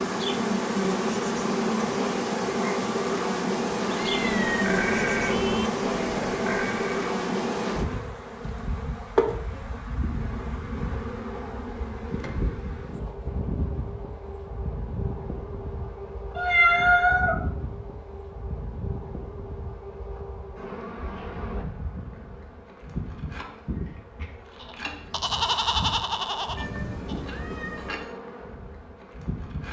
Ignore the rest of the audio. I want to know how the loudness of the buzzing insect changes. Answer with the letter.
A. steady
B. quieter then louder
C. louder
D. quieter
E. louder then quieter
D.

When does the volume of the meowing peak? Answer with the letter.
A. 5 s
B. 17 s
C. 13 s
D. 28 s
B.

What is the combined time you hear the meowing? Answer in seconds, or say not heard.
3 s.